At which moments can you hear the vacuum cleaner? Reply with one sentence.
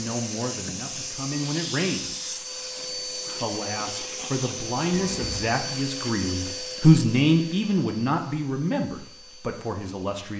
You can hear the vacuum cleaner from 0.0 to 10.3 s.